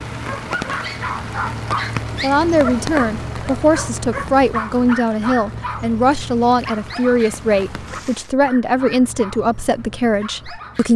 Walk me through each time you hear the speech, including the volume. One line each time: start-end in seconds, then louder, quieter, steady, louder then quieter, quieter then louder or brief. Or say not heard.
2.2-10.9 steady.